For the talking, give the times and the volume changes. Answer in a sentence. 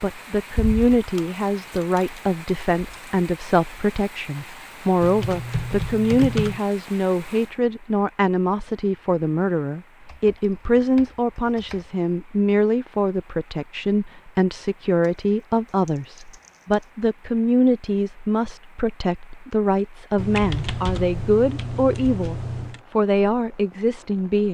You can hear the talking from 0.0 to 24.4 s, at a steady volume.